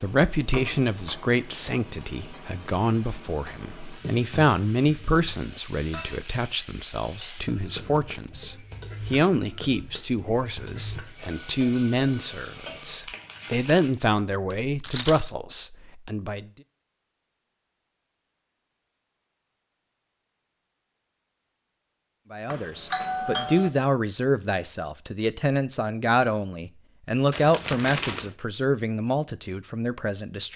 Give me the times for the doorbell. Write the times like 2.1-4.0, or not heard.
11.3-12.1, 22.5-23.7.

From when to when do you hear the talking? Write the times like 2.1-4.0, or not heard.
0.0-16.5, 22.3-30.5.